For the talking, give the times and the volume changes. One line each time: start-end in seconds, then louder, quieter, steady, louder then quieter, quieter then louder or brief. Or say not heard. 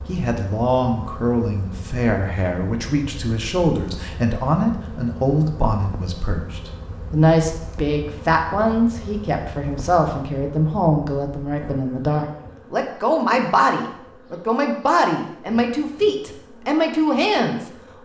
0.1-18.0 steady.